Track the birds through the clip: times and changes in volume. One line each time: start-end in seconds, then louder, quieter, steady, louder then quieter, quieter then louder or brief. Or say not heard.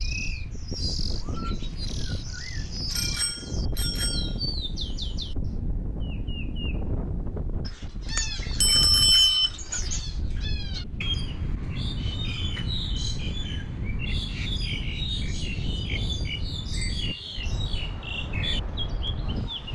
0.0-19.6 steady.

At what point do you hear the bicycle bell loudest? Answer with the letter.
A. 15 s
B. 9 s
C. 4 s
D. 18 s
B.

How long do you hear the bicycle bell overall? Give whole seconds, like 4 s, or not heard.
4 s.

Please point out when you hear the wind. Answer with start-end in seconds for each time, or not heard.
0.0-19.6.